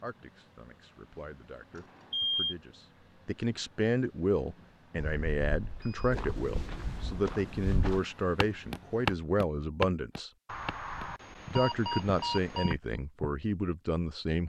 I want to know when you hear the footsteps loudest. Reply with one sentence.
The volume of the footsteps peaks at 9 seconds.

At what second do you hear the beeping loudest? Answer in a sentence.
The volume of the beeping peaks at 2 seconds.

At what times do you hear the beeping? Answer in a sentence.
The beeping can be heard from 1.8 to 2.5 s, from 5.0 to 6.1 s and from 10.4 to 12.8 s.